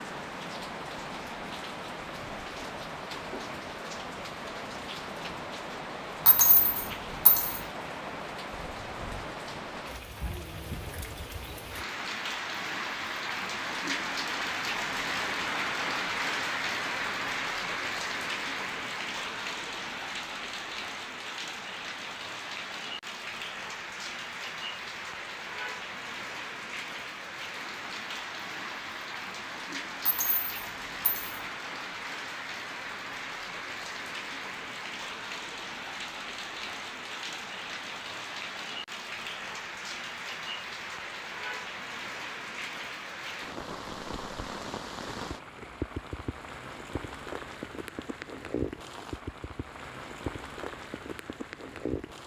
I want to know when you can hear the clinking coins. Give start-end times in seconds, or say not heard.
6.2-7.6, 30.1-31.4.